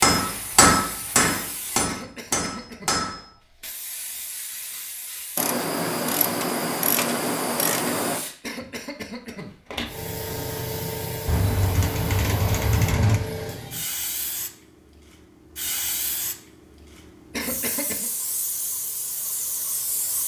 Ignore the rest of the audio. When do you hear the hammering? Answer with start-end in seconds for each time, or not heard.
0.0-3.2.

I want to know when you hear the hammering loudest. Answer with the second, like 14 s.
1 s.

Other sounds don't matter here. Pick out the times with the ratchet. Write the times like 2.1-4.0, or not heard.
5.3-8.2, 11.2-13.2.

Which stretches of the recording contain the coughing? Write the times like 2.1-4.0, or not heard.
1.9-3.0, 8.4-9.5, 17.3-18.1.